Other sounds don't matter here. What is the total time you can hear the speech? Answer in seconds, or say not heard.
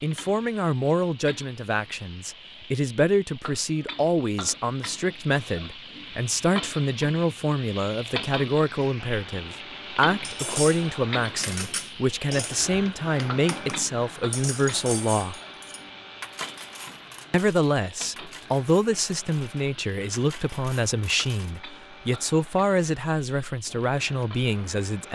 23 s.